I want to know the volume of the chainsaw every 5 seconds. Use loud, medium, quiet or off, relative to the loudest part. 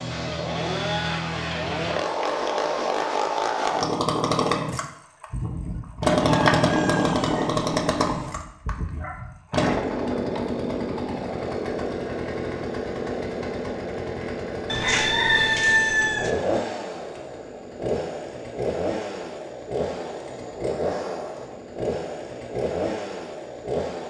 loud, loud, medium, medium, medium.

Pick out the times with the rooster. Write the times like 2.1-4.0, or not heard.
6.2-8.3, 14.7-16.3.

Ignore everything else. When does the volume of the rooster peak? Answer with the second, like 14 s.
16 s.